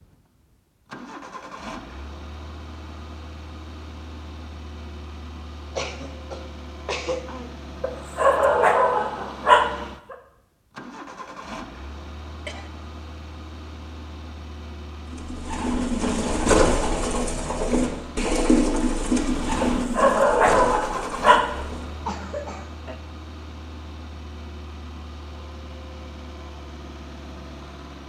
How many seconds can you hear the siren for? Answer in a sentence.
The siren can't be heard in this clip.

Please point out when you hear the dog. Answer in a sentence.
You can hear the dog from 7.8 to 10.2 s and from 19.6 to 21.5 s.